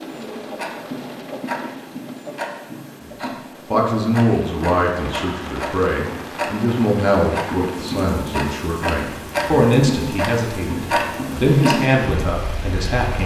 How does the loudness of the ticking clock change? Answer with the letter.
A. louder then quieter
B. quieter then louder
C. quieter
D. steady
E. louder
E.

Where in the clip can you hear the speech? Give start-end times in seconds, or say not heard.
3.2-13.2.